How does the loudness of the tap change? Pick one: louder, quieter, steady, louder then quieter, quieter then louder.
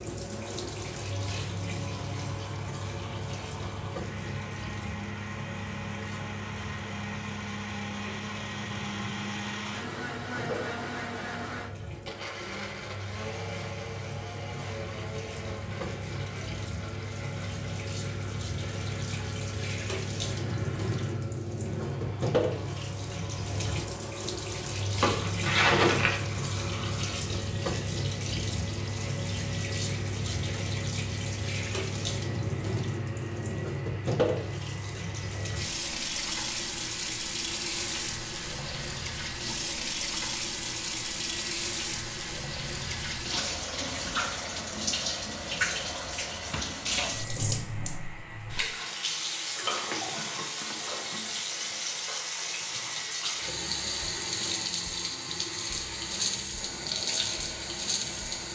louder.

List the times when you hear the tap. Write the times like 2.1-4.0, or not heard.
0.0-58.4.